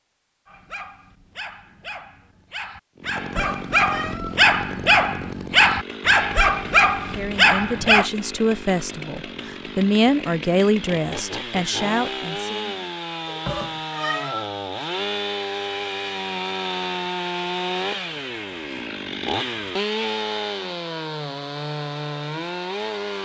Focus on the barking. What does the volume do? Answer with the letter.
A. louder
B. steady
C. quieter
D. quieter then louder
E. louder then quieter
A.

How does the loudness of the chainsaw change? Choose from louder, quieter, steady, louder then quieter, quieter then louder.
louder.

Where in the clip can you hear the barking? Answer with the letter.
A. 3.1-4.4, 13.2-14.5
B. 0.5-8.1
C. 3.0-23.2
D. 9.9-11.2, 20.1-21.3
B.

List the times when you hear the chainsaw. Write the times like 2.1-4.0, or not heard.
3.0-23.2.